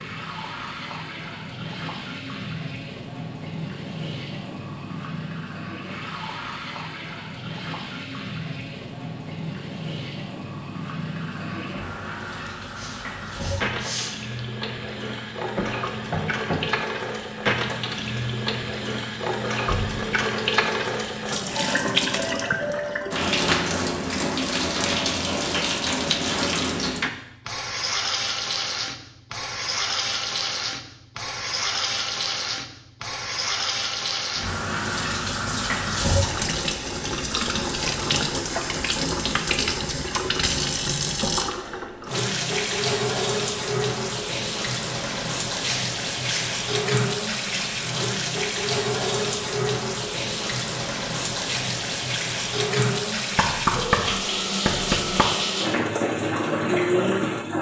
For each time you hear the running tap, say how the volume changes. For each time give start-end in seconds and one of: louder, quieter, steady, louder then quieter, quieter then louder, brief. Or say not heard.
0.0-57.5 louder.